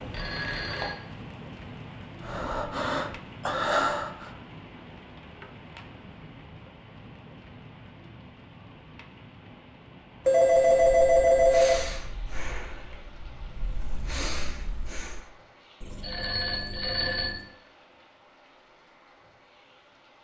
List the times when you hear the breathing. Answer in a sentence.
You can hear the breathing from 2.2 to 4.3 s and from 10.6 to 15.3 s.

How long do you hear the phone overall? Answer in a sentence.
The phone can be heard for 4 seconds in total.